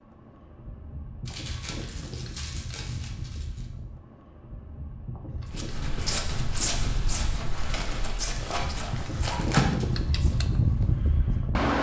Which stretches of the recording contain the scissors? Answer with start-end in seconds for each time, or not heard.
not heard.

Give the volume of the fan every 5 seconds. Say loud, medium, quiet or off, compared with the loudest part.
quiet, medium, loud.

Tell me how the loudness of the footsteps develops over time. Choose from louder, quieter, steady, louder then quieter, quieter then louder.
quieter.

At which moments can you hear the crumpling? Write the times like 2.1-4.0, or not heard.
1.2-3.6, 7.3-9.7.